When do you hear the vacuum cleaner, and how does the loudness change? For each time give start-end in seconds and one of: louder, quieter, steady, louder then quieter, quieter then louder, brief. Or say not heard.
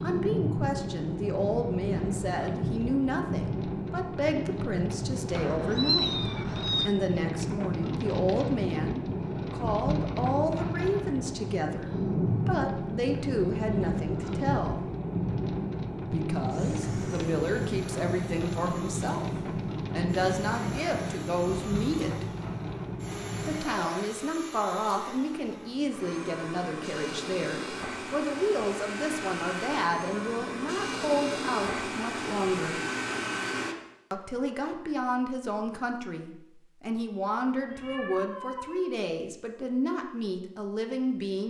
16.5-33.8 louder.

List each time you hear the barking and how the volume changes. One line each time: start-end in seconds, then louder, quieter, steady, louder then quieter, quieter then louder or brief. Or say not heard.
not heard.